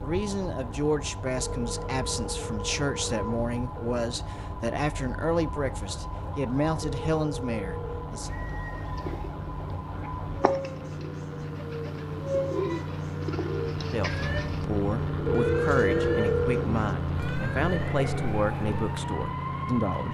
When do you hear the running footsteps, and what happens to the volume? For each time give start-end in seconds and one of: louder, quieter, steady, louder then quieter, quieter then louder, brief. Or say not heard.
not heard.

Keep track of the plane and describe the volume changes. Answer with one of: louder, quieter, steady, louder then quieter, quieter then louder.
louder.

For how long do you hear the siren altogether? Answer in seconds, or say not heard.
20 s.